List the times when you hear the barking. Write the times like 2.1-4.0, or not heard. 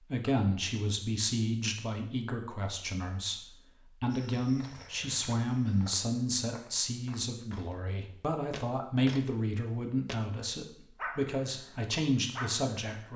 10.9-13.1.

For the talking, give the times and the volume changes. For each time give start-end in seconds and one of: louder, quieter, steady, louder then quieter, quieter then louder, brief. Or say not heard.
0.0-13.1 steady.